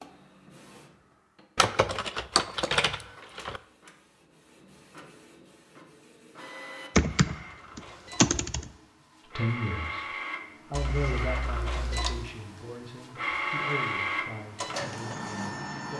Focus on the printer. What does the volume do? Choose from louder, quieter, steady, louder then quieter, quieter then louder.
louder.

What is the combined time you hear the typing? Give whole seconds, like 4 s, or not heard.
5 s.